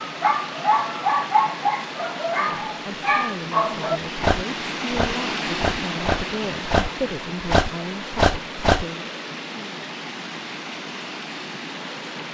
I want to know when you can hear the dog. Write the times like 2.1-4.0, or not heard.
0.0-8.8.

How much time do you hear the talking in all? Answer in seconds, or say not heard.
7 s.